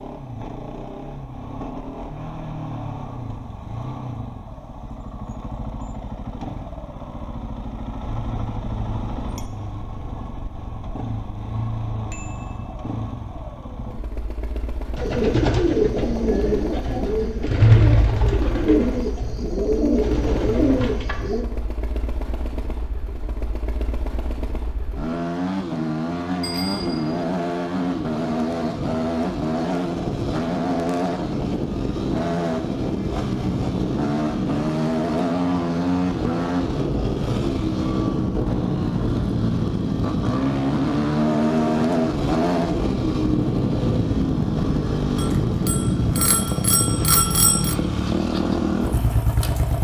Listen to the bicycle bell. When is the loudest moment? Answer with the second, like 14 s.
47 s.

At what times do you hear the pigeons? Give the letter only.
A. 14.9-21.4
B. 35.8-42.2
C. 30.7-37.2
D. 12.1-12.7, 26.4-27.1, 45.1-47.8
A.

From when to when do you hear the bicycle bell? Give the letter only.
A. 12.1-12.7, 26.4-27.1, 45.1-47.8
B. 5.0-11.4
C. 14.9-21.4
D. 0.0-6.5
A.